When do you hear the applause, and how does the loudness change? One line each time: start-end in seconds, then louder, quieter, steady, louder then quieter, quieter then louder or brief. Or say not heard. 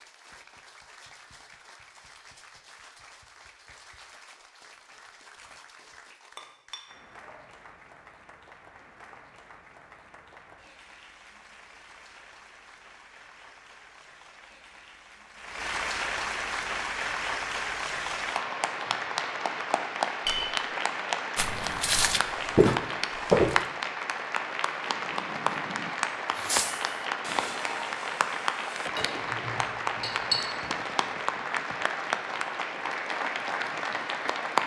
0.0-34.6 louder.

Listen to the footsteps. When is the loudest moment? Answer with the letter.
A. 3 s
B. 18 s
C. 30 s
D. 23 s
D.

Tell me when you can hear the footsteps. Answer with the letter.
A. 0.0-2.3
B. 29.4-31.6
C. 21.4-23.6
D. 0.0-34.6
C.